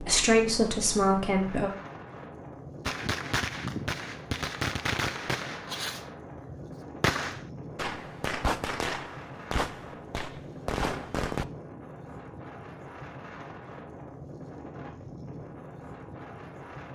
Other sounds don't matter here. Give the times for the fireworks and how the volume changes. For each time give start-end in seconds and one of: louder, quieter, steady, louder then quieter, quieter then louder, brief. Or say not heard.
2.9-11.4 steady.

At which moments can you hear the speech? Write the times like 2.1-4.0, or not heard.
0.0-1.7.